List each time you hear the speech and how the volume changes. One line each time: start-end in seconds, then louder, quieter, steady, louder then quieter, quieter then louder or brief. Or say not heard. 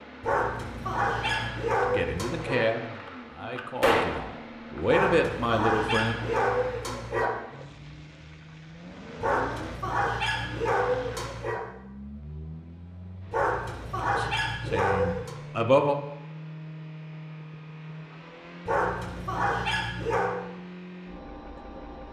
1.8-6.2 quieter then louder
14.2-15.9 brief.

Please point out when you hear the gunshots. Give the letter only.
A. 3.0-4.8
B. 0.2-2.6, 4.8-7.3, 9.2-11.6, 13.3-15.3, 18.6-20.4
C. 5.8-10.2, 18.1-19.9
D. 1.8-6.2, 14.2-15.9
A.